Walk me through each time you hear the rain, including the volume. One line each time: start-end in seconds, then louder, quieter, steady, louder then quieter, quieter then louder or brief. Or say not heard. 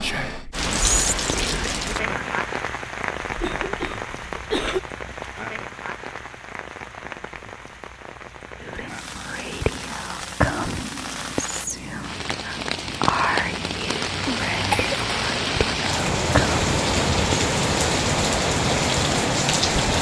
0.0-19.9 quieter then louder.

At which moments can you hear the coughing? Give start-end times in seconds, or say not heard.
3.2-4.8, 14.2-14.9.